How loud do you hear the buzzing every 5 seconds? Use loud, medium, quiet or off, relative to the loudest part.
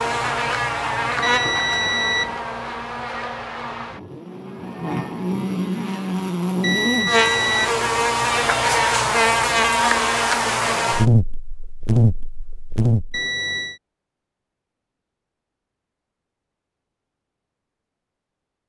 medium, loud, loud, off.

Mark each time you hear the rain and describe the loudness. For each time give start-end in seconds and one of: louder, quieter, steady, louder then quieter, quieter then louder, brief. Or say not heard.
not heard.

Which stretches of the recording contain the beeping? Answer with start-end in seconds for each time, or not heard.
1.2-2.4, 6.6-7.8, 13.1-13.8.